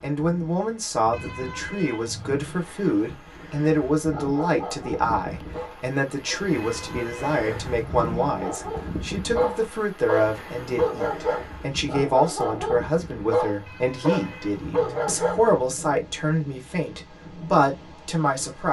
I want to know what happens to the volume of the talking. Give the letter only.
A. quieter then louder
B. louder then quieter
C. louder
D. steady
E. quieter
D.